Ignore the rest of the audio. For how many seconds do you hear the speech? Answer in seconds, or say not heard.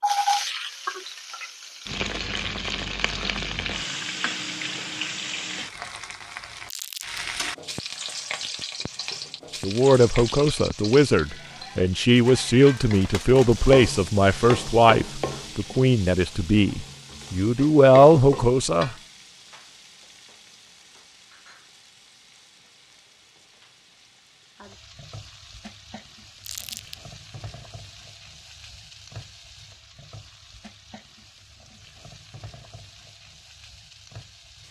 9 s.